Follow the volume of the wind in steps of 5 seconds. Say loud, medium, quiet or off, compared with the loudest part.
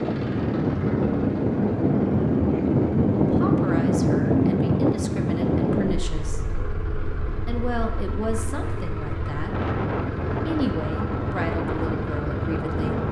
loud, medium, medium.